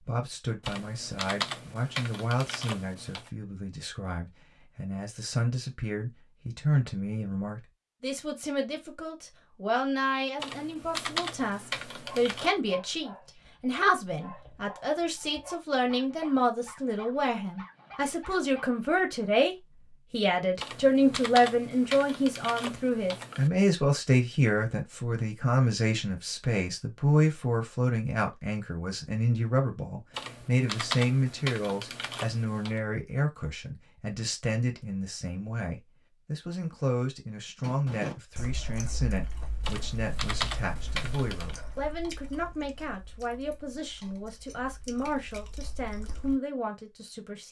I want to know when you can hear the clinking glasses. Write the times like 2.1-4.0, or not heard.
not heard.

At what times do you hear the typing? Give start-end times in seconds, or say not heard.
0.6-3.3, 10.4-12.5, 20.6-23.5, 30.1-32.8, 39.6-41.5.